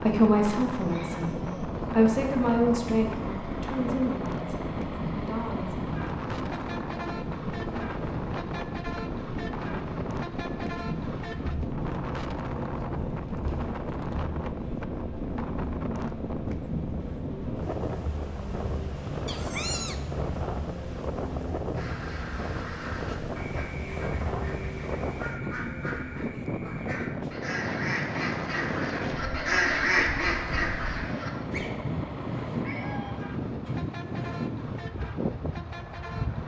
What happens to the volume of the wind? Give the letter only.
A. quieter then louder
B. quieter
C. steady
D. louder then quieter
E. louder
C.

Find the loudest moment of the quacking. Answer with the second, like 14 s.
30 s.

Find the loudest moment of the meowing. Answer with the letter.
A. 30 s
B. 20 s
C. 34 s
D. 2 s
B.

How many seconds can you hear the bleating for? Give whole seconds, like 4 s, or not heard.
not heard.